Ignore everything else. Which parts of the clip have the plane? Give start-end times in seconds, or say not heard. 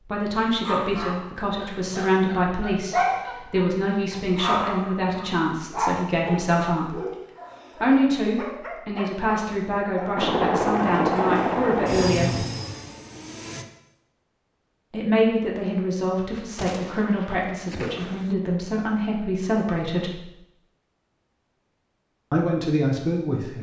10.2-13.7.